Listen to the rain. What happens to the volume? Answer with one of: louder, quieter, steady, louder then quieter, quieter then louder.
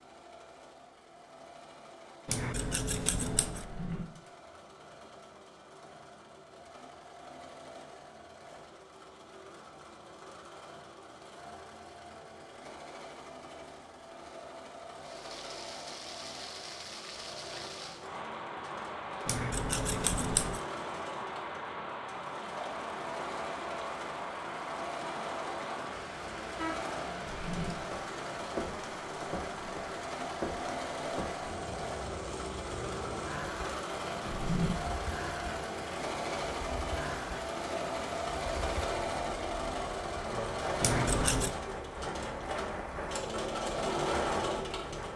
steady.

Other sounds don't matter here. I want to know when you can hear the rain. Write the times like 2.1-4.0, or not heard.
15.0-45.1.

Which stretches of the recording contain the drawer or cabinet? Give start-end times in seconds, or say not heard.
3.5-4.0, 27.2-27.7, 34.2-34.8.